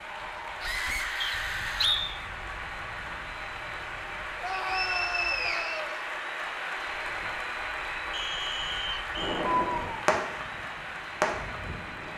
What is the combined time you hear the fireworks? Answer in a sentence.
The fireworks can be heard for 2 seconds in total.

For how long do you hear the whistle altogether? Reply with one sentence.
You can hear the whistle for 4 seconds altogether.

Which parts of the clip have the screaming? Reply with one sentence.
The screaming can be heard from 0.6 to 2.0 s, from 4.3 to 6.0 s and from 9.6 to 10.0 s.